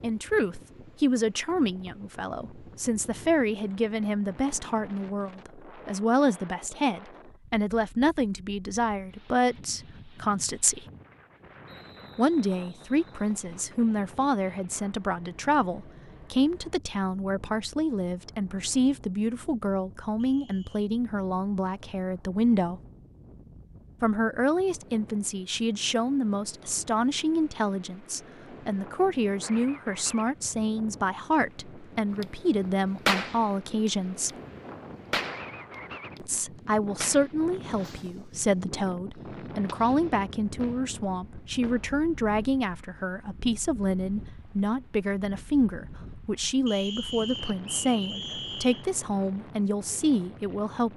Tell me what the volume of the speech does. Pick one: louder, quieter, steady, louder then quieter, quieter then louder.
steady.